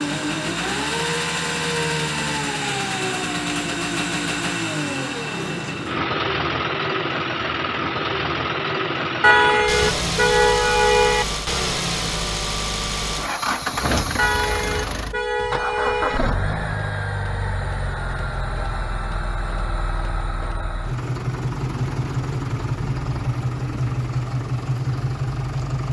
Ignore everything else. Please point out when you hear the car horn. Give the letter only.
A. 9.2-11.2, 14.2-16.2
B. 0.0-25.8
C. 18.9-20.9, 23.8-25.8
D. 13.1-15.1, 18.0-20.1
A.